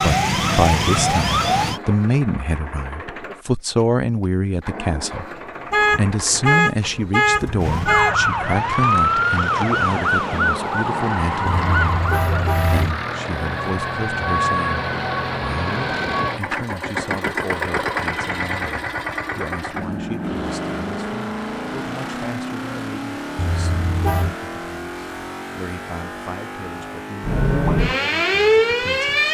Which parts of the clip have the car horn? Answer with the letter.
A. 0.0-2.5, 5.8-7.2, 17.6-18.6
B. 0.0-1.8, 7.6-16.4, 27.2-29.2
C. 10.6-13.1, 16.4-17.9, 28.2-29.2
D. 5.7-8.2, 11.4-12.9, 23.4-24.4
D.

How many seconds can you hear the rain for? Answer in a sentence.
The rain can't be heard in this clip.